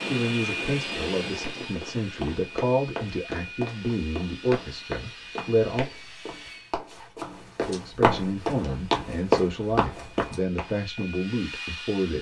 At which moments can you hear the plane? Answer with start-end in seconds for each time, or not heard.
0.0-6.8, 8.2-12.1.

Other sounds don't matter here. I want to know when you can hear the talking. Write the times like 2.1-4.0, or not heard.
0.1-5.8, 7.7-12.1.